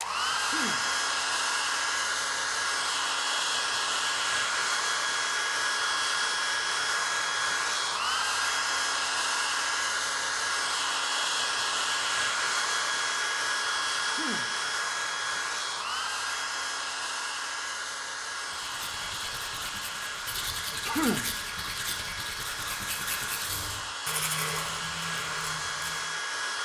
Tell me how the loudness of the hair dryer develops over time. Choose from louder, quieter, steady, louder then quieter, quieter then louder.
quieter.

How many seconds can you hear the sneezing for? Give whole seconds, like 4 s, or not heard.
2 s.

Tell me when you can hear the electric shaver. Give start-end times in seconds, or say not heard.
not heard.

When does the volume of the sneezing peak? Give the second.
21 s.